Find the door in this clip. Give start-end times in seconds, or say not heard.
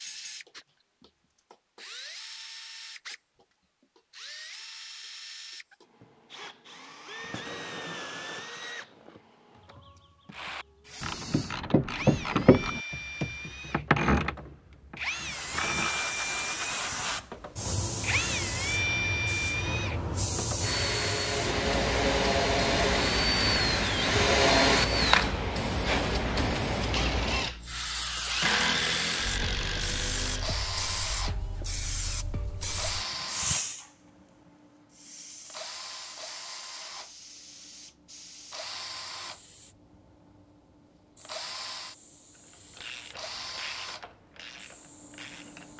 not heard.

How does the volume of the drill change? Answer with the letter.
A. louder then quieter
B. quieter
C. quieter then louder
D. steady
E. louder
A.